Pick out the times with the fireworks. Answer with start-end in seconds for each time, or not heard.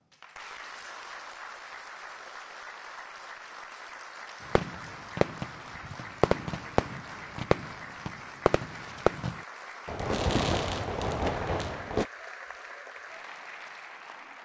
4.5-12.1.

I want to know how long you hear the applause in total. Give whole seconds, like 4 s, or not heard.
14 s.